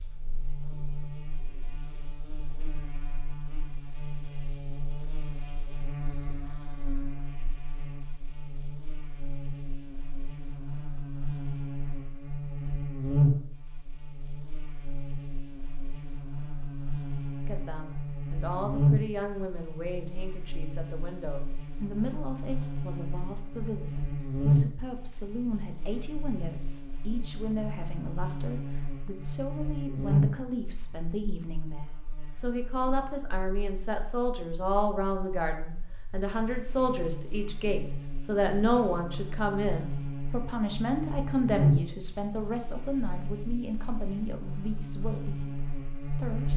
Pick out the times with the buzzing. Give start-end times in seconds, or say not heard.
0.0-46.5.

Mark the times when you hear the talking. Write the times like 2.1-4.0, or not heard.
17.4-46.5.